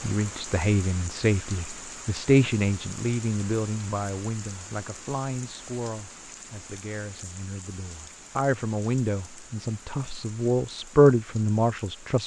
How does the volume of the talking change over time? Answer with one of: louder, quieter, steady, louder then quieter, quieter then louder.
quieter then louder.